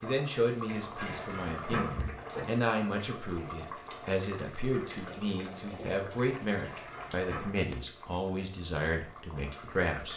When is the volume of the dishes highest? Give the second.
2 s.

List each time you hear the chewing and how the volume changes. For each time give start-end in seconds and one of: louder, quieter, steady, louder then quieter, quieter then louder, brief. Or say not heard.
not heard.